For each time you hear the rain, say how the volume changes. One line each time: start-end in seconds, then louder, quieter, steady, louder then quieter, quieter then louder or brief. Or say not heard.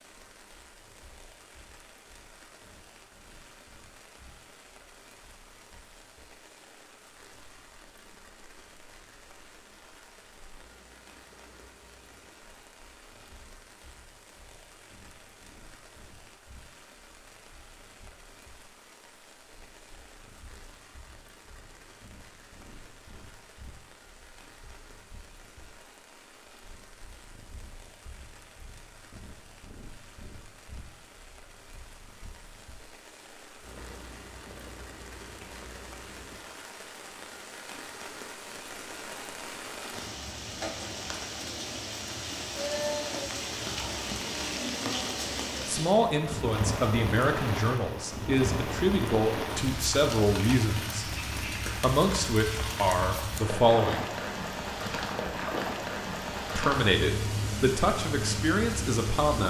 0.0-59.4 louder.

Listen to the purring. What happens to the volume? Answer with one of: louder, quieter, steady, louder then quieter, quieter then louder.
louder.